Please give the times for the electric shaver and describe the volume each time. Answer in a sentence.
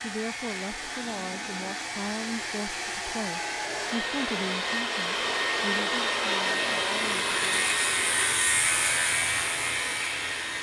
You can hear the electric shaver from 0.0 to 10.5 s, getting louder.